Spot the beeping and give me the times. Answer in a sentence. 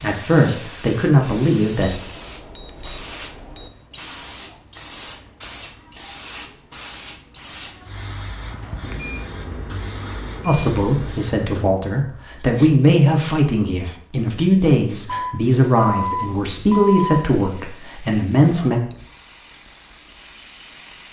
You can hear the beeping from 1.9 to 3.7 s, from 8.8 to 11.2 s and from 15.1 to 17.2 s.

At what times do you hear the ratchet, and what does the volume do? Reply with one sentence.
You can't hear the ratchet here.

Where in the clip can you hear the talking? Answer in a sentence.
The talking can be heard from 0.0 to 1.9 s and from 10.4 to 18.8 s.